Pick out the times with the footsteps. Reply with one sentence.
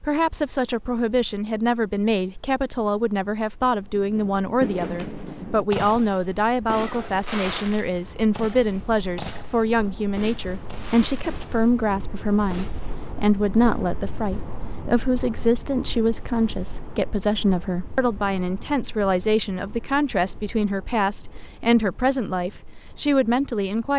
You can't hear the footsteps here.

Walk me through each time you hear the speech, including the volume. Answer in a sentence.
You can hear the speech from 0.0 to 23.9 s, at a steady volume.